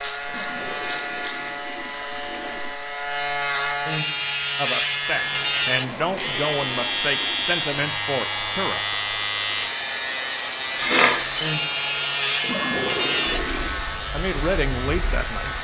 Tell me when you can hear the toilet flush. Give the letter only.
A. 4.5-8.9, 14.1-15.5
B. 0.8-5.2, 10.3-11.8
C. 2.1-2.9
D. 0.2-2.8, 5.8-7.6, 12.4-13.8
D.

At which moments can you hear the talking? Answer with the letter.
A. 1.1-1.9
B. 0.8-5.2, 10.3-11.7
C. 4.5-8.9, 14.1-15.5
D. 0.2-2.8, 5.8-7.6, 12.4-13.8
C.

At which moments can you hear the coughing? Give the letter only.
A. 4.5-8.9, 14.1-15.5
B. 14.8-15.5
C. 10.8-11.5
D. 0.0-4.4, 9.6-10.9
C.